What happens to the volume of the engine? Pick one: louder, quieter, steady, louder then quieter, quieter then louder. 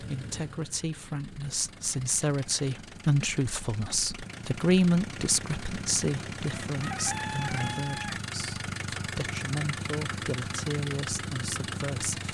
louder.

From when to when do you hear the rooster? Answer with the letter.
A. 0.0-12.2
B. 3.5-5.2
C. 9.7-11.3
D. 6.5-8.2
D.